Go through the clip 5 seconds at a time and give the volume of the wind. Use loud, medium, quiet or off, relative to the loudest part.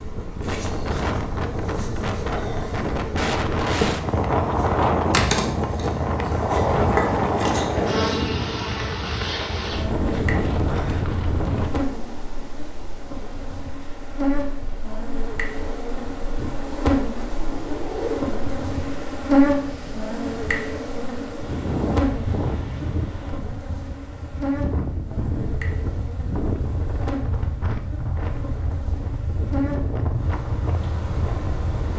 loud, loud, medium, medium, medium, medium, medium.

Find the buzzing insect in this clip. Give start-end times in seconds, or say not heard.
0.0-31.9.